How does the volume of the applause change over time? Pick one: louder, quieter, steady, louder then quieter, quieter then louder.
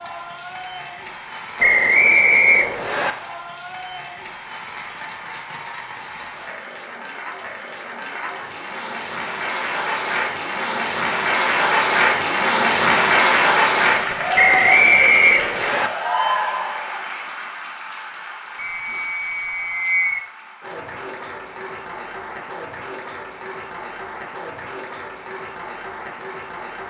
louder then quieter.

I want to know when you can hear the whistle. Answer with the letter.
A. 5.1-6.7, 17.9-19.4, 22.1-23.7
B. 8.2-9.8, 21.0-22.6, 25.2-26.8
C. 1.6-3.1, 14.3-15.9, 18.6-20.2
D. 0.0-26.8
C.